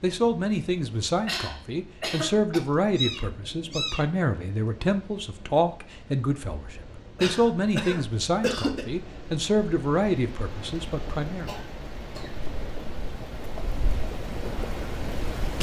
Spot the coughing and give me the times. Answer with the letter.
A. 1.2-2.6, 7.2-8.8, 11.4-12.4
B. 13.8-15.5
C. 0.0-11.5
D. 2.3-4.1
A.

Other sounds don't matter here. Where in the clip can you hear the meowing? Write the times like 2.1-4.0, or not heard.
2.3-4.1.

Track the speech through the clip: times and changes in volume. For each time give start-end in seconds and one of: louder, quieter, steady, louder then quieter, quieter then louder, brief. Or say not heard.
0.0-11.5 steady.